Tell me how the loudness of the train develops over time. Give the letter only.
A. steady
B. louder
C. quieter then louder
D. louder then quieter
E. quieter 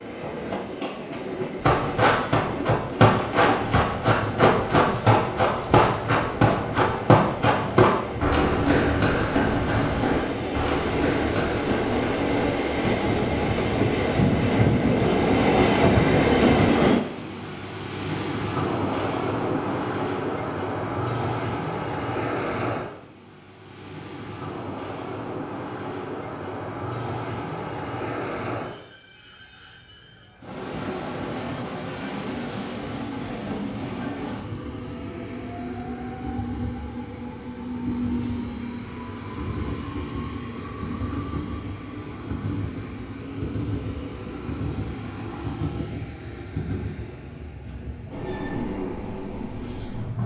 D.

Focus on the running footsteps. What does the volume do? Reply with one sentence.
The volume of the running footsteps goes down.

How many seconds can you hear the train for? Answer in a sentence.
You can hear the train for 50 seconds altogether.